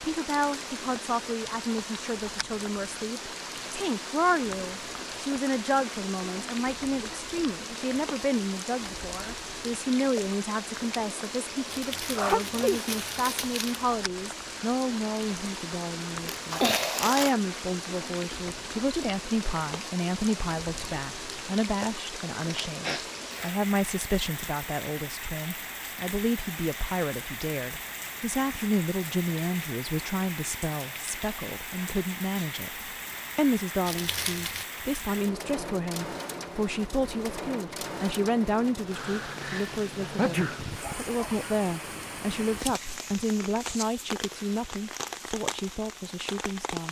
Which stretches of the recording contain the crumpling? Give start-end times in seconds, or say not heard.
11.7-13.8, 16.2-17.4, 33.9-34.6.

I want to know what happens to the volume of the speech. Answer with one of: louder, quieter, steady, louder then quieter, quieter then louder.
steady.